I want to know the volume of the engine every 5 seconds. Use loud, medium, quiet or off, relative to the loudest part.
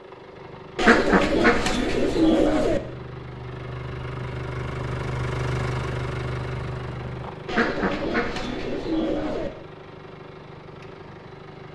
loud, loud, medium.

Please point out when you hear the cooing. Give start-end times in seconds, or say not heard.
0.8-2.8, 7.5-9.5.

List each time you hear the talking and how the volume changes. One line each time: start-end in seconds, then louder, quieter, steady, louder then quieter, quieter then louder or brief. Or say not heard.
not heard.